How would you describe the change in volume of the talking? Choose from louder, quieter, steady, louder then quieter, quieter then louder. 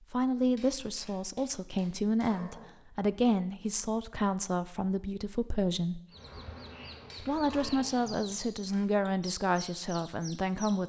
steady.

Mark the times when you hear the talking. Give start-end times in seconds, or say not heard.
0.1-6.0, 7.2-10.8.